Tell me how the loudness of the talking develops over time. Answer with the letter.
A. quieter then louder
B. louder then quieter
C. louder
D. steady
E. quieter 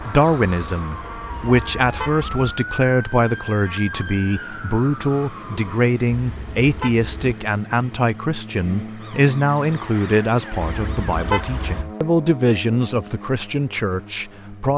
D.